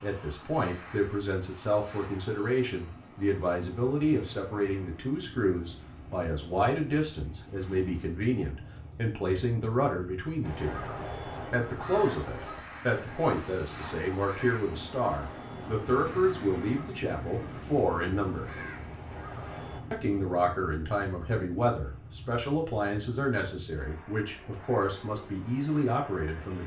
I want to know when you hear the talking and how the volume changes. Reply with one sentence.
You can hear the talking from 0.0 to 10.8 s, at a steady volume; from 11.5 to 18.4 s, at a steady volume; and from 19.9 to 26.6 s, at a steady volume.